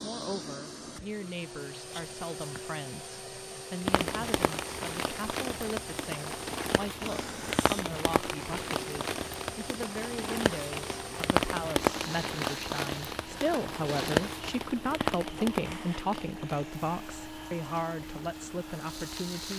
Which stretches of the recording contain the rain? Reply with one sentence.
The rain can be heard from 3.9 to 19.5 s.